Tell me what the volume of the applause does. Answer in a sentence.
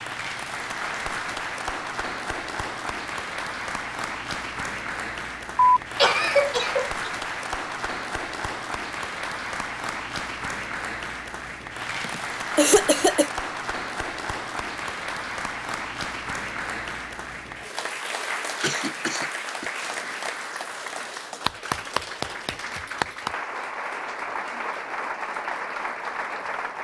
The loudness of the applause stays about the same.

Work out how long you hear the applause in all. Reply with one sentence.
The applause can be heard for 27 seconds in total.